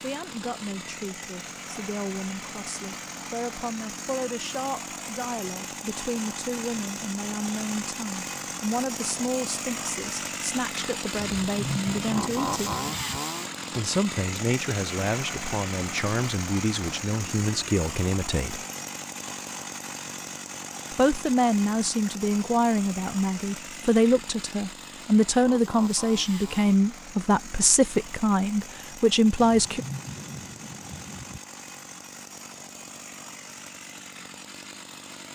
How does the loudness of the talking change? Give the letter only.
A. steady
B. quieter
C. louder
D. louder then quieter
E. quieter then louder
C.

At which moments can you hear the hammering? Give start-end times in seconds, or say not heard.
not heard.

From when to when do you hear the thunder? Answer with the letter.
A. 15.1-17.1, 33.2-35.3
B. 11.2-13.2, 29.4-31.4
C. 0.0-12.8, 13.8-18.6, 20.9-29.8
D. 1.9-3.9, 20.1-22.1
B.